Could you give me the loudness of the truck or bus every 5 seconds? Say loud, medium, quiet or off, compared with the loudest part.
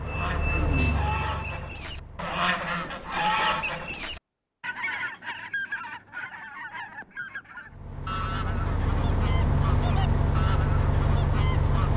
medium, loud, loud.